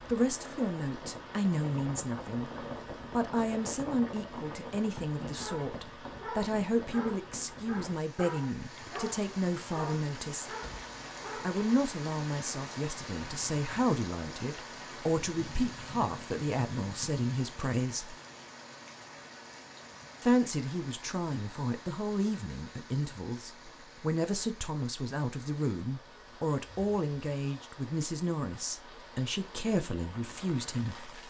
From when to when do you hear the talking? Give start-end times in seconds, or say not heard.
0.1-2.5, 3.1-10.5, 11.4-18.1, 20.2-31.2.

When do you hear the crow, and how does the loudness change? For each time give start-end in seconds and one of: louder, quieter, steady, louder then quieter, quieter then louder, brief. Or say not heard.
not heard.